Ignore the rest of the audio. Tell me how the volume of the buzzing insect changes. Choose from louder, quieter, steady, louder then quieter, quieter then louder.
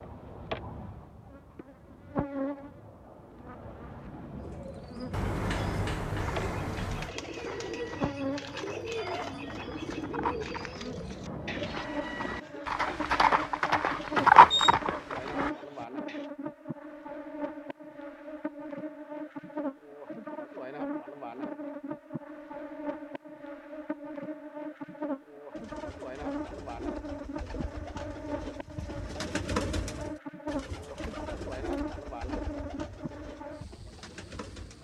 steady.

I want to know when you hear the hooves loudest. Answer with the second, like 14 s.
14 s.